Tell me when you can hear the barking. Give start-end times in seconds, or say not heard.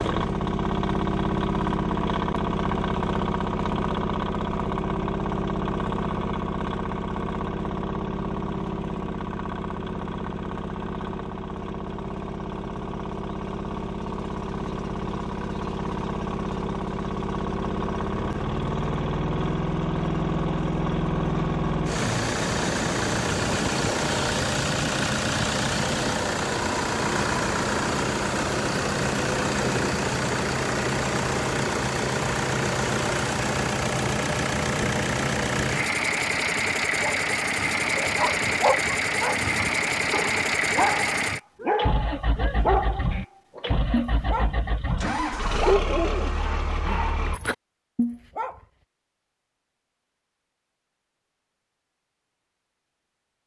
37.0-48.6.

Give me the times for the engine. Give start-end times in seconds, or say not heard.
0.0-47.4.